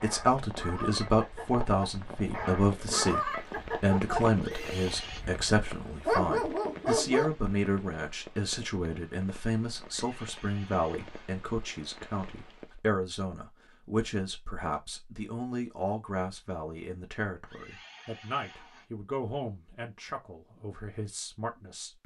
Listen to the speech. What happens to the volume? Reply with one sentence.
The volume of the speech goes down.